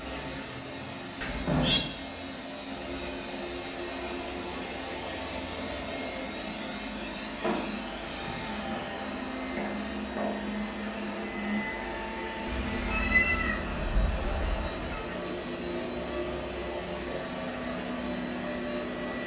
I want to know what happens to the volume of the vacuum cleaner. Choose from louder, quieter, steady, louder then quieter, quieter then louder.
steady.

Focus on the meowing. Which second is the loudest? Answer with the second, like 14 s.
13 s.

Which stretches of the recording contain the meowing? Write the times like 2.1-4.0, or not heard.
1.2-1.8, 12.4-15.0.